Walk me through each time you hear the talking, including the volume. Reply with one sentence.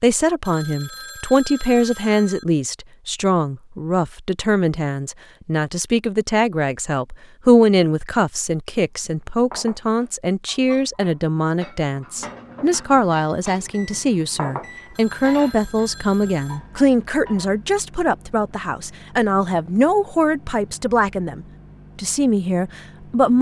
The talking can be heard from 0.0 to 23.3 s, at a steady volume.